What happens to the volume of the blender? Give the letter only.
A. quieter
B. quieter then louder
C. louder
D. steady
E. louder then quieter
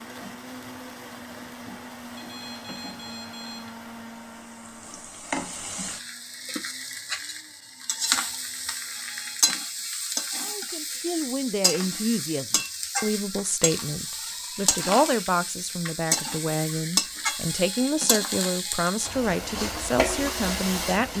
A.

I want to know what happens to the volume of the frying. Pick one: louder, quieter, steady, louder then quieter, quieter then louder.
louder.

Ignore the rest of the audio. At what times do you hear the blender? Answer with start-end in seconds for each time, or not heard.
0.0-9.4.